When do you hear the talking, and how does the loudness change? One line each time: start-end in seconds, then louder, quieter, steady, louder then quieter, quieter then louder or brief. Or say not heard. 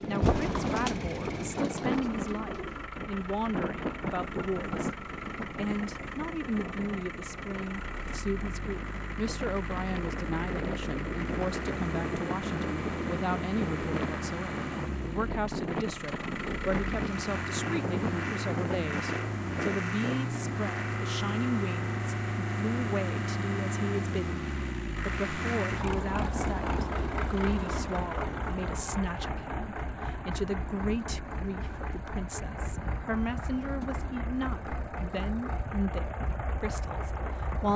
0.1-37.7 steady.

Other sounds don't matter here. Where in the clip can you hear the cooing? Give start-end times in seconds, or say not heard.
0.2-2.9.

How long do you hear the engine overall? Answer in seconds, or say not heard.
38 s.